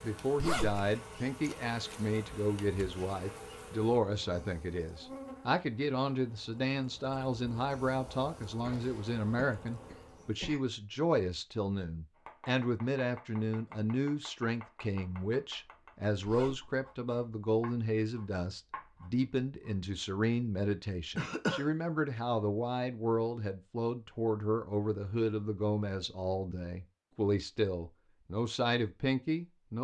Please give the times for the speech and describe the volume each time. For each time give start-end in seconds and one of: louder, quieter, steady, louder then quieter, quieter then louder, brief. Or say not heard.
0.0-29.7 steady.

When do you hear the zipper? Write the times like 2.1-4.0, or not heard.
0.3-0.8, 16.2-16.8.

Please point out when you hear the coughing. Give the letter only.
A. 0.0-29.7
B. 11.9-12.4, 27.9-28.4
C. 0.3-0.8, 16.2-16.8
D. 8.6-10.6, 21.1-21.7
D.